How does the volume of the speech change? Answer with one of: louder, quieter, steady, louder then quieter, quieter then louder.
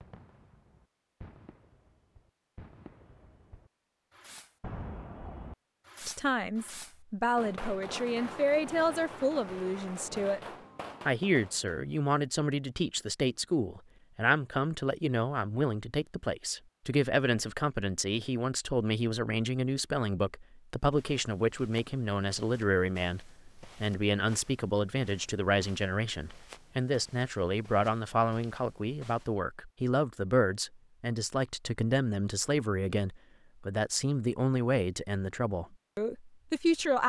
steady.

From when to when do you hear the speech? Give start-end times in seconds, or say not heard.
6.0-10.4, 11.1-37.0.